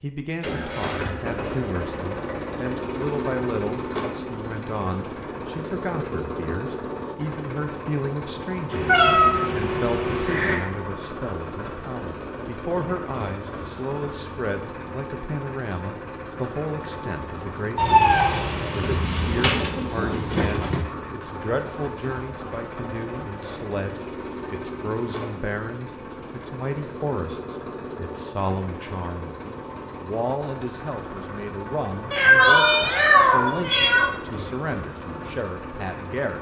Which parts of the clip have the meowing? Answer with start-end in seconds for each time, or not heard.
8.7-10.6, 17.8-19.6, 32.1-34.1.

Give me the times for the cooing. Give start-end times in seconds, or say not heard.
18.9-20.9.